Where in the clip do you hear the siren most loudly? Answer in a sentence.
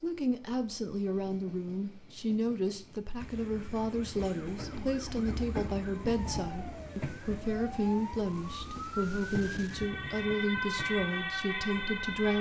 The loudest moment of the siren is at 11 seconds.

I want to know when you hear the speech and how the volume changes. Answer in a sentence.
You can hear the speech from 0.0 to 12.3 s, at a steady volume.